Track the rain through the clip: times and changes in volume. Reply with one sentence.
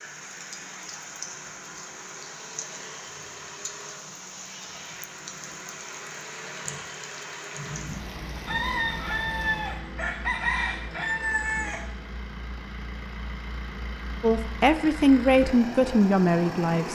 You can hear the rain from 0.0 to 9.8 s, at a steady volume.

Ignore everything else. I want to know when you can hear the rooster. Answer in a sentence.
The rooster can be heard from 8.4 to 11.9 s.